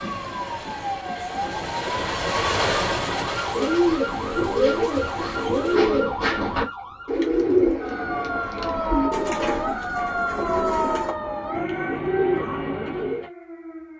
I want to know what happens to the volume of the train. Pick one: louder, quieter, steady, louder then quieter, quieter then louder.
louder then quieter.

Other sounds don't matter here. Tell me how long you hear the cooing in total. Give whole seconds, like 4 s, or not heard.
10 s.